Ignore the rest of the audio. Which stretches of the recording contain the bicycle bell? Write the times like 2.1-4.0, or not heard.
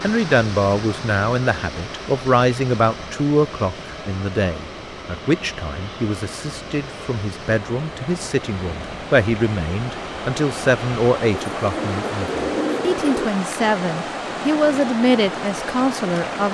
not heard.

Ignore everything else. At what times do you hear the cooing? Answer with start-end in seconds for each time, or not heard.
11.3-13.2.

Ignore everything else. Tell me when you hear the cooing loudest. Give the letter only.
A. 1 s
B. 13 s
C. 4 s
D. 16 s
B.